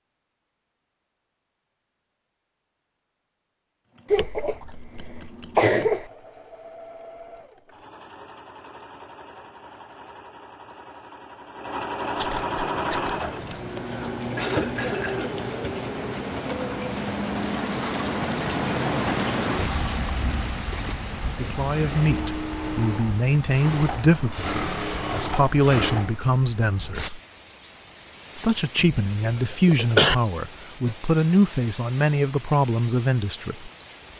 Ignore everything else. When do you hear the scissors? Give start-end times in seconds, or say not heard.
12.2-13.7.